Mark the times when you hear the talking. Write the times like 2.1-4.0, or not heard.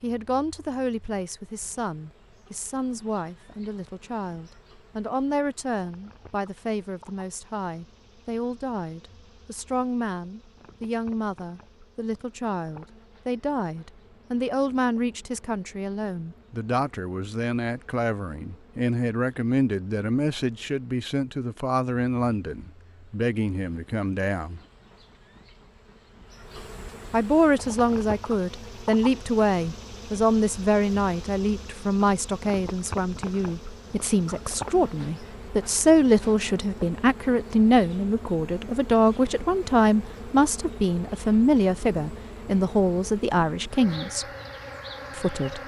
0.0-24.6, 27.1-44.2, 45.1-45.6.